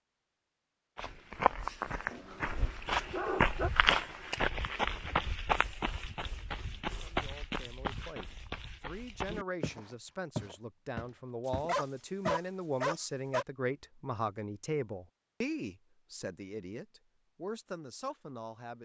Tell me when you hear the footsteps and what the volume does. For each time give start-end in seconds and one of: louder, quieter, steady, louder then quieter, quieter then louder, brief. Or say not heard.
0.9-12.4 quieter.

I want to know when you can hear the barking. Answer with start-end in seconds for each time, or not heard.
2.1-3.7, 11.4-13.4.